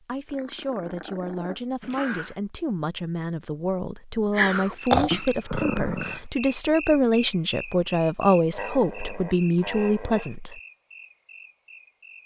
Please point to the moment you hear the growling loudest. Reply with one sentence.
The loudest moment of the growling is at 5 seconds.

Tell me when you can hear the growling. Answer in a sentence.
The growling can be heard from 0.3 to 2.4 s, from 4.3 to 6.2 s and from 8.5 to 10.3 s.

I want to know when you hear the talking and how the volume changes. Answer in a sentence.
You can hear the talking from 0.1 to 10.6 s, getting louder.